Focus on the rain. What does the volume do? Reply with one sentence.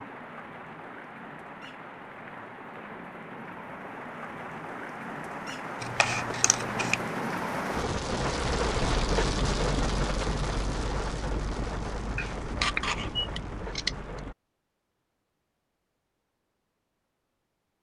The loudness of the rain goes up, then down.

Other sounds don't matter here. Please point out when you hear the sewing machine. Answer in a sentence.
The sewing machine can't be heard in this clip.